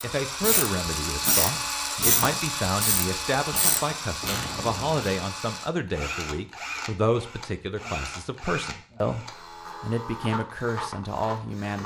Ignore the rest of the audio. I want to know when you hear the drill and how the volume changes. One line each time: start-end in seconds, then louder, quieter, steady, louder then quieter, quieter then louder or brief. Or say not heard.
0.0-11.8 quieter.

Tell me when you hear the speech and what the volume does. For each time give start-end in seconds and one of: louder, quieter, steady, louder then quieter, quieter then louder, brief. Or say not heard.
0.0-11.8 steady.